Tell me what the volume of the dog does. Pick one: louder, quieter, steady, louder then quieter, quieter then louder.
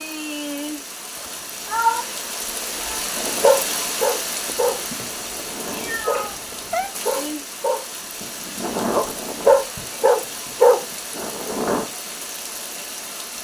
quieter then louder.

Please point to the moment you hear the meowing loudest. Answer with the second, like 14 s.
2 s.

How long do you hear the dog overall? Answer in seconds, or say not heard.
8 s.